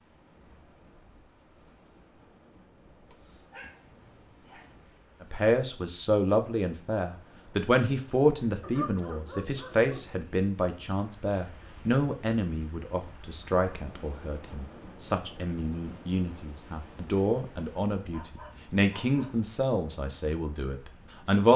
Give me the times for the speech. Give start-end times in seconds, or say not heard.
5.2-21.5.